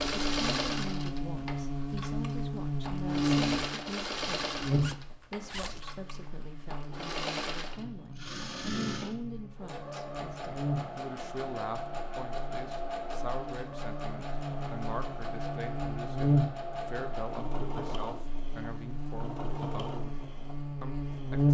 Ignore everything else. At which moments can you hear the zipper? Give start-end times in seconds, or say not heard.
4.8-5.8.